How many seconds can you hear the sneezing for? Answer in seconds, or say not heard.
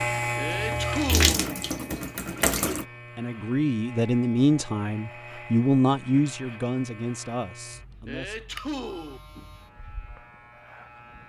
2 s.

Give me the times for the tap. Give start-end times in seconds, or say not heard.
0.0-2.9.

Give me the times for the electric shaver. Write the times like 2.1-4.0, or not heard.
0.0-11.2.